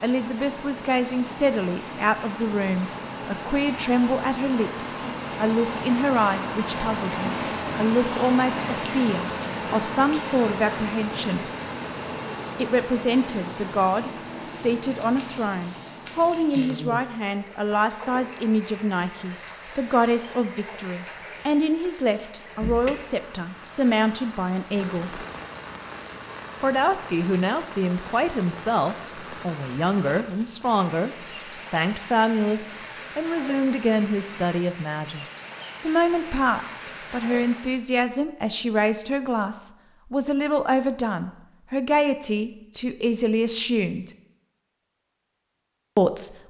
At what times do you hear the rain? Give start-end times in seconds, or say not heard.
0.0-37.8.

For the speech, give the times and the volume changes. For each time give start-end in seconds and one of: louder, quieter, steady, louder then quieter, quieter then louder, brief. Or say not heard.
0.0-11.4 steady
12.6-25.2 steady
26.6-31.1 steady
31.7-44.0 steady
46.0-46.4 brief.